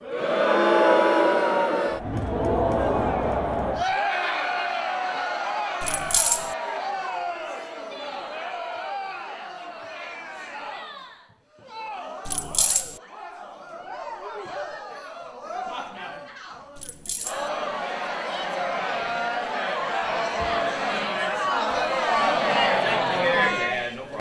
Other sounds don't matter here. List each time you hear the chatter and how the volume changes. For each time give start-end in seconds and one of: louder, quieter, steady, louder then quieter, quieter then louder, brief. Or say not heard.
0.0-24.1 quieter then louder.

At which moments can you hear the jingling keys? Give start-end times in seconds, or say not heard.
5.8-6.5, 12.2-12.9, 16.8-17.5.